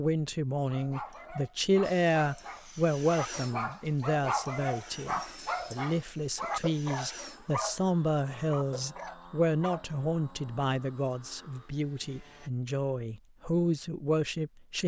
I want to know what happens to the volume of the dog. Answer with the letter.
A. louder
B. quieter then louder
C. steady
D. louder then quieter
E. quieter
D.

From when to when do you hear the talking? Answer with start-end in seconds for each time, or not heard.
0.0-14.8.